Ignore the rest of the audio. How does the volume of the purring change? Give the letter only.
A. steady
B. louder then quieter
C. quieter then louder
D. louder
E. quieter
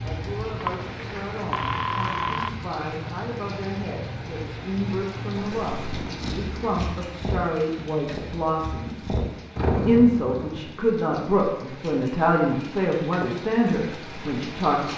C.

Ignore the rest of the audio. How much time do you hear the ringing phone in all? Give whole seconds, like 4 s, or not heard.
2 s.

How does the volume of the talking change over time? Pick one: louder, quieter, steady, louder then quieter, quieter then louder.
louder.